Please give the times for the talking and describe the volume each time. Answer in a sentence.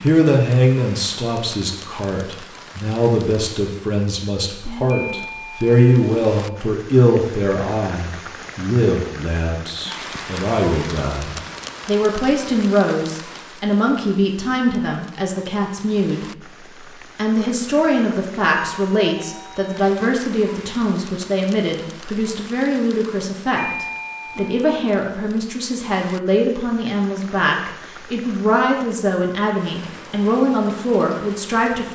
You can hear the talking from 0.0 to 16.2 s, at a steady volume; and from 17.1 to 31.9 s, at a steady volume.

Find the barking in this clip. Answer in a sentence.
The barking can't be heard in this clip.